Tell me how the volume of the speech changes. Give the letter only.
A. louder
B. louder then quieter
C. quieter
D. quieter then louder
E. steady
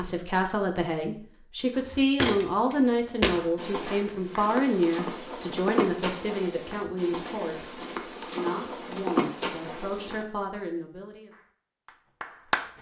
C.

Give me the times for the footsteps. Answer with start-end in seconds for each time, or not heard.
1.7-10.2.